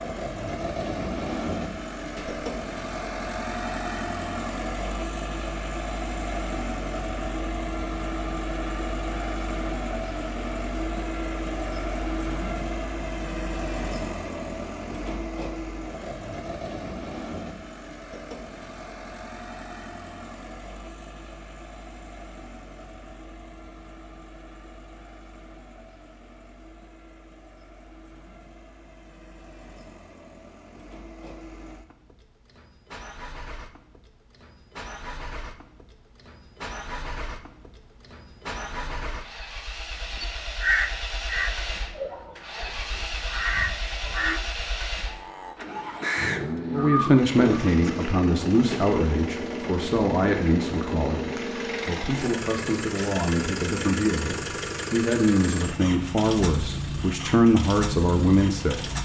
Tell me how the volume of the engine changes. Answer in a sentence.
The loudness of the engine goes down, then up.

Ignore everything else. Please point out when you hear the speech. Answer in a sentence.
You can hear the speech from 46.7 to 58.9 s.